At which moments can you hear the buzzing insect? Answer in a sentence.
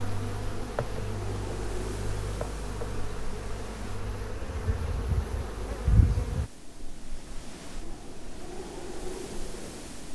You can hear the buzzing insect from 0.0 to 6.5 s.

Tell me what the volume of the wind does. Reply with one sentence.
The loudness of the wind goes down, then up.